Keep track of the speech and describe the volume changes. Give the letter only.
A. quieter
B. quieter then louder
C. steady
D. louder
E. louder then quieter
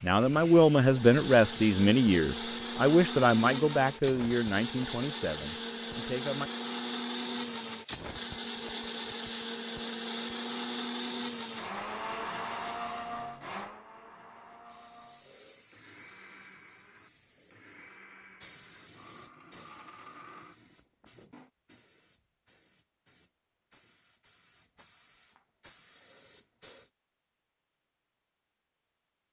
A.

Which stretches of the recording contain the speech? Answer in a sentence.
You can hear the speech from 0.0 to 6.5 s.